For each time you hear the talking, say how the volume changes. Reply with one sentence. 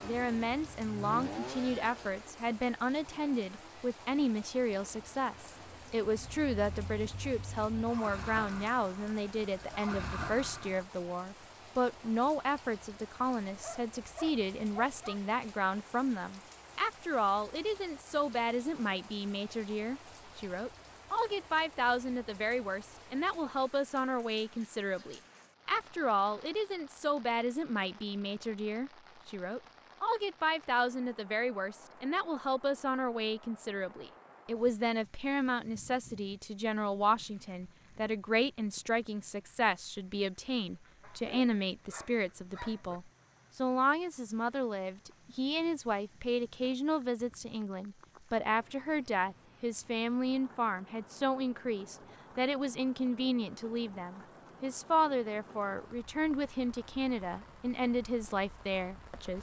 The talking can be heard from 0.0 to 59.3 s, at a steady volume.